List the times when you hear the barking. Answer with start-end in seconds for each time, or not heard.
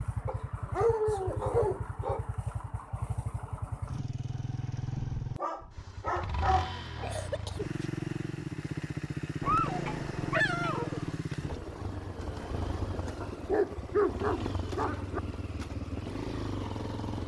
0.2-2.2, 5.3-7.0, 9.4-11.2, 13.2-15.2.